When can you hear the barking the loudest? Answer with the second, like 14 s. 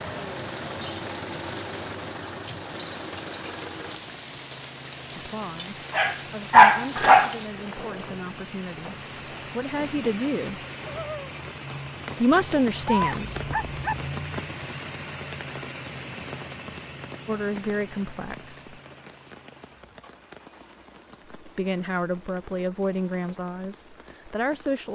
7 s.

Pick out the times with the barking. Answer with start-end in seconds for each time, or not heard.
5.9-7.3, 12.8-14.1.